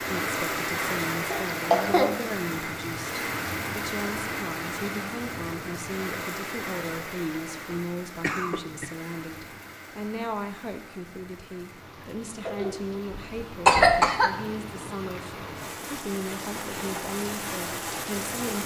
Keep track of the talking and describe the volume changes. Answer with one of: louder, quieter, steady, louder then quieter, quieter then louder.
steady.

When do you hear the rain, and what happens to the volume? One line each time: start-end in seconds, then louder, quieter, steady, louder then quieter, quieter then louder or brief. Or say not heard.
0.0-18.6 quieter then louder.